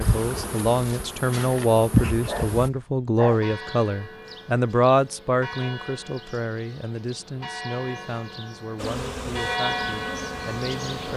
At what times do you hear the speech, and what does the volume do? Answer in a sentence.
You can hear the speech from 0.0 to 11.1 s, getting quieter.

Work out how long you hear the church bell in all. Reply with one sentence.
The church bell can be heard for 8 seconds in total.